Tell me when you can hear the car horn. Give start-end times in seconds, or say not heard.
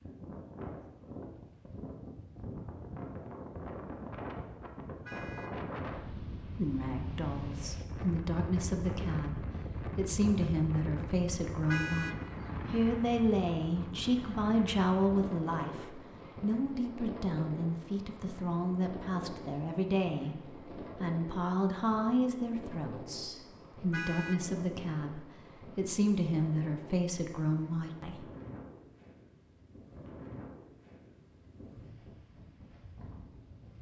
5.0-5.5, 11.7-12.2, 23.9-24.4.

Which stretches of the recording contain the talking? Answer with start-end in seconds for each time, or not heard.
6.5-28.2.